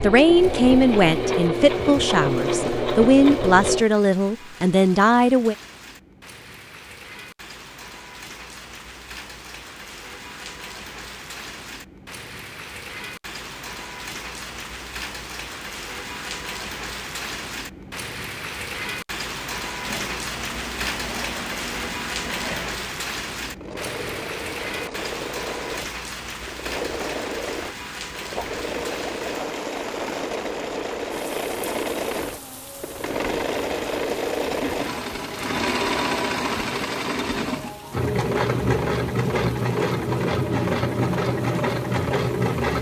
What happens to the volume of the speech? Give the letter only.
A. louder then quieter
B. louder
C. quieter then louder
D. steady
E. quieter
D.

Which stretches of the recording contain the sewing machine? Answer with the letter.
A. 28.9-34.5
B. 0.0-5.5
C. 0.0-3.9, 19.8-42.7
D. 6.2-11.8
C.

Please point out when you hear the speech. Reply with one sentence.
The speech can be heard from 0.0 to 5.5 s.